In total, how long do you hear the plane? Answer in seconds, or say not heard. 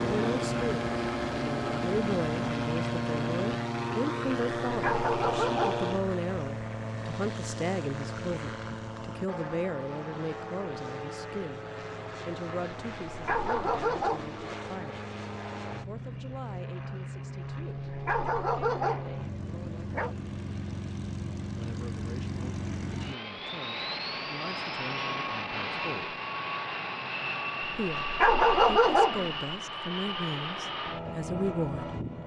32 s.